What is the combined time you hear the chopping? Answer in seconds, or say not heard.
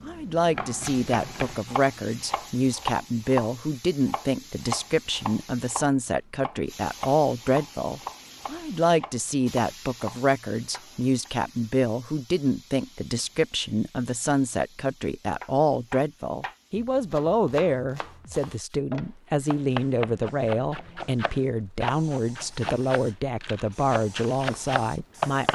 21 s.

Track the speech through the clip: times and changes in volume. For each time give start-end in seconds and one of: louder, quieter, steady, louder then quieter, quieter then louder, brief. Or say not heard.
0.0-25.5 steady.